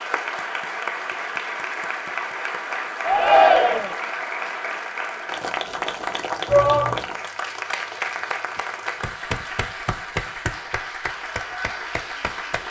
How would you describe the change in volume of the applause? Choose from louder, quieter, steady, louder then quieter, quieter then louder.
steady.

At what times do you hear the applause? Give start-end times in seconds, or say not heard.
0.0-12.6.